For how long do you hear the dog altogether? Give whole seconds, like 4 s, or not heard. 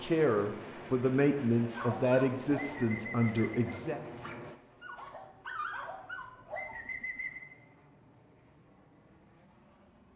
6 s.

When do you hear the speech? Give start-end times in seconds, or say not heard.
0.0-4.0.